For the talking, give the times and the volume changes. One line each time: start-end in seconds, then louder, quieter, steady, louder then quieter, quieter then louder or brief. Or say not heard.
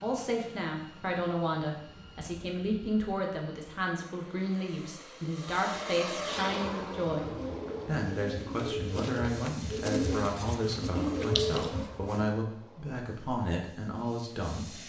0.0-14.8 steady.